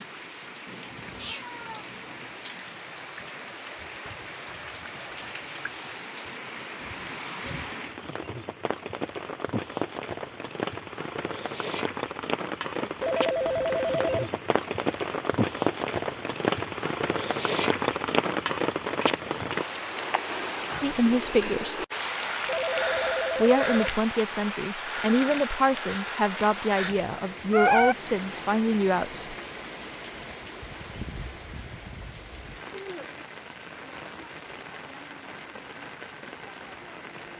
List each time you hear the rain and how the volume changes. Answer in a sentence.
You can hear the rain from 0.0 to 37.3 s, getting louder then quieter.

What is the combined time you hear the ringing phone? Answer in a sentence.
You can hear the ringing phone for 3 seconds altogether.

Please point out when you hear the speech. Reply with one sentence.
You can hear the speech from 20.8 to 21.8 s and from 23.4 to 29.4 s.